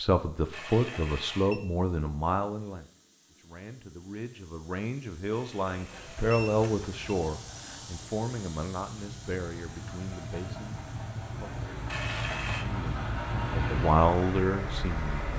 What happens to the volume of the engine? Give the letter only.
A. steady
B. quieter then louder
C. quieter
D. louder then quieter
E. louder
E.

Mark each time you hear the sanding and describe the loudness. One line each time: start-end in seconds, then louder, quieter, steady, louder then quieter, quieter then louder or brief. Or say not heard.
not heard.